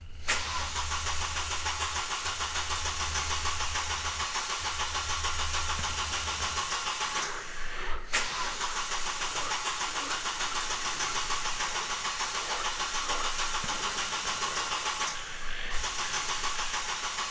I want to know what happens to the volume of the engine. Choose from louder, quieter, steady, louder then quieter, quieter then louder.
steady.